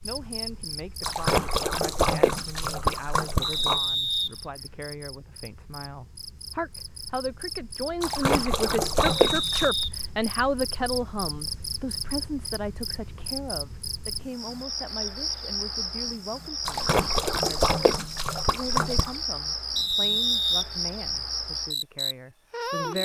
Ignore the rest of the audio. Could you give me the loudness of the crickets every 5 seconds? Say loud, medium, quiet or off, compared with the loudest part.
medium, medium, medium, loud, loud.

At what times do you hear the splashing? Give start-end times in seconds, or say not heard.
1.0-3.8, 8.0-9.7, 16.6-19.1.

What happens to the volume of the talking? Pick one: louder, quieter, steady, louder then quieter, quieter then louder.
louder then quieter.